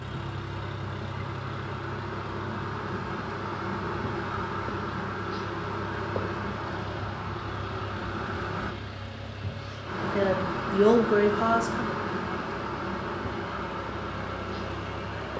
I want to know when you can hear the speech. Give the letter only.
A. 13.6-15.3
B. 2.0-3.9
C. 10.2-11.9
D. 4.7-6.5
C.